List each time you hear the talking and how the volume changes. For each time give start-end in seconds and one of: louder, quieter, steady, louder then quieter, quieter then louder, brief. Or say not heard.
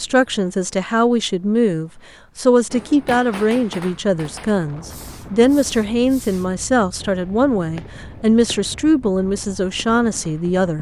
0.0-10.7 steady.